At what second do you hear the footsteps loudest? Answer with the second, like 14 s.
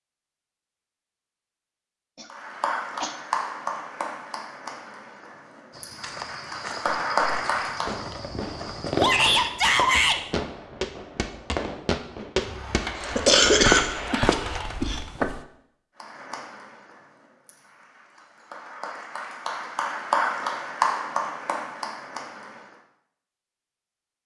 14 s.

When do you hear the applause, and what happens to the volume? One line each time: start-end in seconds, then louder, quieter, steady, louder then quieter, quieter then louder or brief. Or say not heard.
2.3-8.0 quieter then louder
16.0-22.6 louder then quieter.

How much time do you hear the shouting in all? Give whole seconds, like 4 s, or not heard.
2 s.